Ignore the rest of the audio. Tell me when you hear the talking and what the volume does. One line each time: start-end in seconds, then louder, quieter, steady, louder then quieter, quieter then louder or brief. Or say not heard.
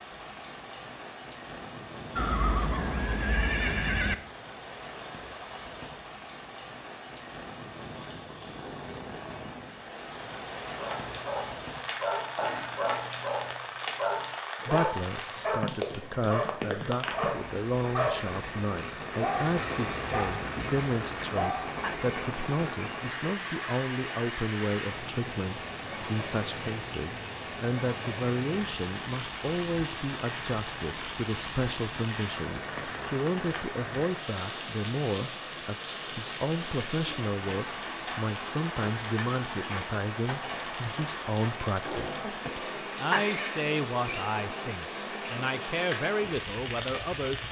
14.7-47.4 steady.